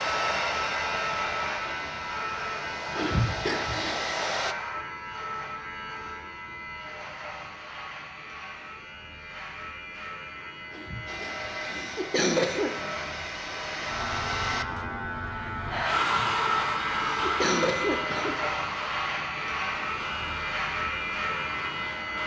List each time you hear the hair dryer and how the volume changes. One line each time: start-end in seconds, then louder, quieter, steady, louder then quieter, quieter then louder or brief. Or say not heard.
0.0-4.5 quieter then louder
11.1-22.2 louder then quieter.